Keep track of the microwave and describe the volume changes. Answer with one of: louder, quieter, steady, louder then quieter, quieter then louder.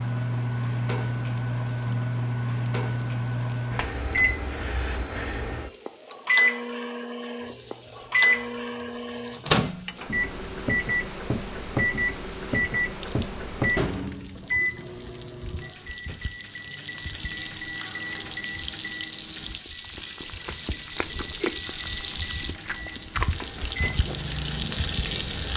quieter.